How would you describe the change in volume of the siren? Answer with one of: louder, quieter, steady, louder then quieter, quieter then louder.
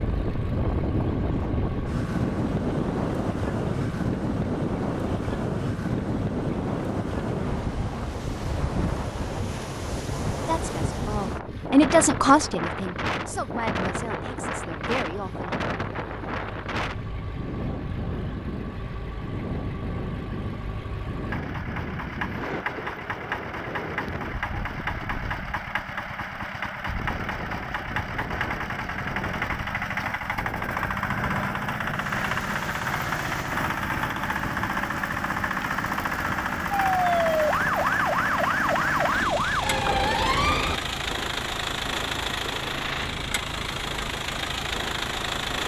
steady.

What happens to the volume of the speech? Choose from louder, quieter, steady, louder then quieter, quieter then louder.
louder then quieter.